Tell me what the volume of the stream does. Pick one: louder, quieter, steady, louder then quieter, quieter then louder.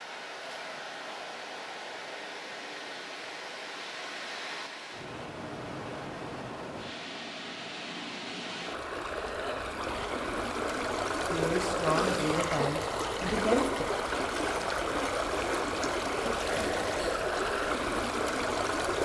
louder.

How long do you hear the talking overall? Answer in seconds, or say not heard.
3 s.